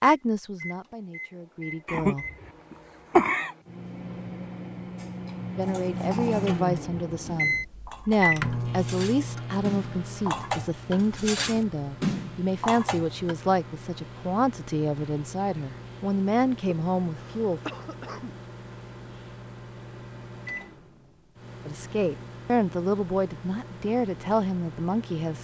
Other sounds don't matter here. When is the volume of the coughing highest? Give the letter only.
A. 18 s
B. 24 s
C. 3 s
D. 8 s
C.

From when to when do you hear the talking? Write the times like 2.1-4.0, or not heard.
0.0-2.2, 5.5-17.6, 21.6-25.4.